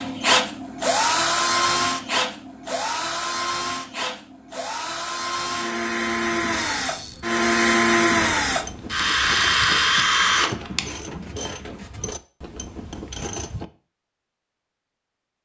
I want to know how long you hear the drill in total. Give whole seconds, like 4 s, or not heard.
11 s.